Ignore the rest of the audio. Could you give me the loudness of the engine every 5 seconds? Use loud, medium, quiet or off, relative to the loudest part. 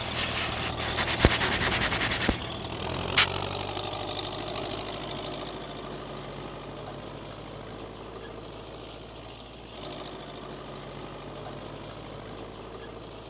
loud, medium, medium.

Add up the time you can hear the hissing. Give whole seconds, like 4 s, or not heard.
3 s.